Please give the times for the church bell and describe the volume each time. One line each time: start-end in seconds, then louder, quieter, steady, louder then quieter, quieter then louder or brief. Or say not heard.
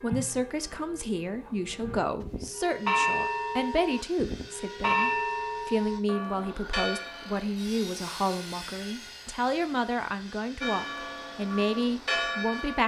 0.0-7.5 louder then quieter
10.6-12.8 brief.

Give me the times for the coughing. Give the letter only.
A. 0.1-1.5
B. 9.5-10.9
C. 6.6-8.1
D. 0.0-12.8
A.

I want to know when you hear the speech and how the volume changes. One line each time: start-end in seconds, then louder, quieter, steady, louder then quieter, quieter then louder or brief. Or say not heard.
0.0-12.8 steady.